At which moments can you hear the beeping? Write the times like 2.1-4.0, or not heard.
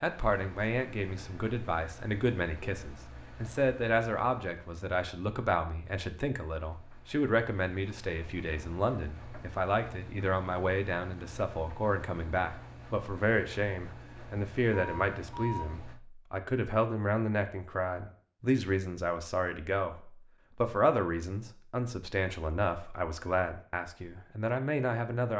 14.7-15.7.